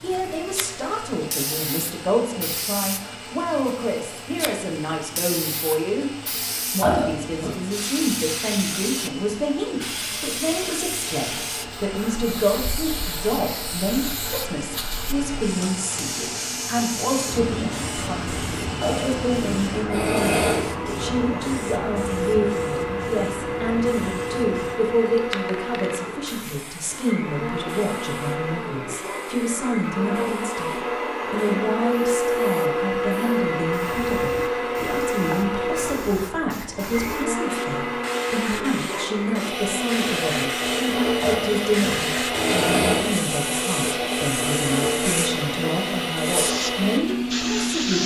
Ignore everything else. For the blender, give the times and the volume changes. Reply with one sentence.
You can hear the blender from 0.0 to 48.0 s, getting louder.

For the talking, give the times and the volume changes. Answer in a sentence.
The talking can be heard from 0.0 to 48.0 s, at a steady volume.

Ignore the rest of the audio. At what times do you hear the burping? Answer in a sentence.
The burping can be heard from 6.8 to 7.5 s, from 18.8 to 20.7 s and from 41.2 to 43.1 s.